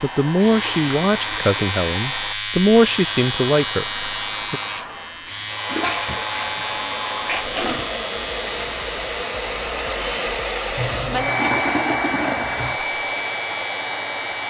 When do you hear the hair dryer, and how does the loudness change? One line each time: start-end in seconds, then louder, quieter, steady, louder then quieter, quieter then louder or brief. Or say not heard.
0.0-14.4 louder.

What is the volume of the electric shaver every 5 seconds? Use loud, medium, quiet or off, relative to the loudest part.
loud, loud, medium.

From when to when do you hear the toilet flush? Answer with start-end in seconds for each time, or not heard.
0.4-1.5, 5.7-8.0, 10.8-12.8.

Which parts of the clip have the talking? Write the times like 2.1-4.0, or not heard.
0.0-4.6.